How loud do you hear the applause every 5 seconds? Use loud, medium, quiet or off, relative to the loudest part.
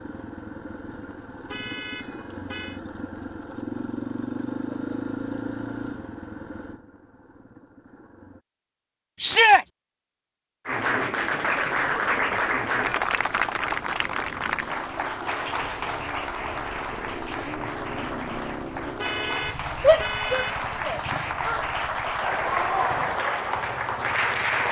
off, off, loud, medium, loud.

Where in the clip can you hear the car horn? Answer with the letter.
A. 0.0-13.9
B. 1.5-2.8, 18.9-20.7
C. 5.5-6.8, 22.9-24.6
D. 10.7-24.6
B.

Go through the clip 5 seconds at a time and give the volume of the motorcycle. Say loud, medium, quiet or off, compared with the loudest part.
loud, loud, medium, loud, medium.